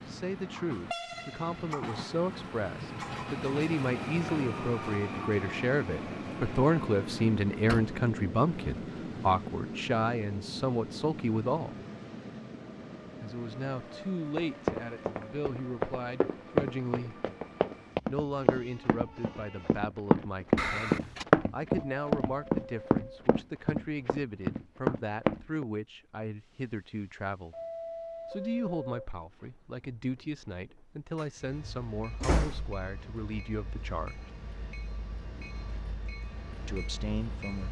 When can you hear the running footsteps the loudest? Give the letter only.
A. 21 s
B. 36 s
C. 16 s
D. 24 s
A.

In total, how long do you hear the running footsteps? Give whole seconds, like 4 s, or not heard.
11 s.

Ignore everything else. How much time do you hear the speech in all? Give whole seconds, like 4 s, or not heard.
32 s.